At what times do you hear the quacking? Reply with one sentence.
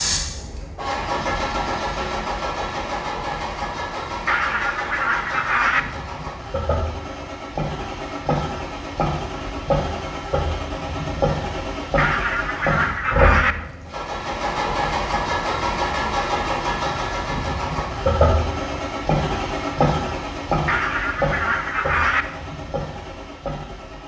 The quacking can be heard from 4.2 to 5.8 s, from 11.9 to 13.6 s and from 20.6 to 22.2 s.